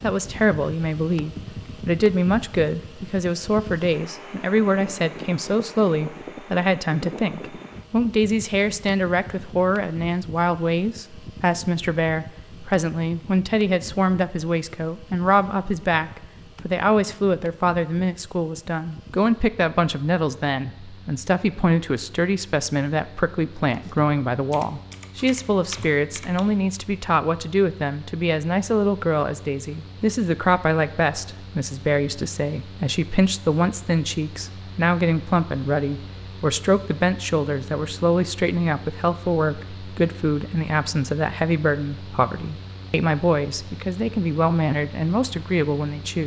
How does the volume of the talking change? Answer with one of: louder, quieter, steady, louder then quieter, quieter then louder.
steady.